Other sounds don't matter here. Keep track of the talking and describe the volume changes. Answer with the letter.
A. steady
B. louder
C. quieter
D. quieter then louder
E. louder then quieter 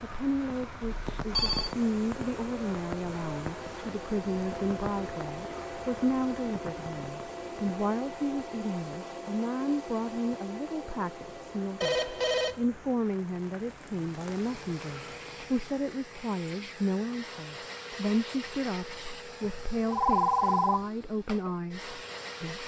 A.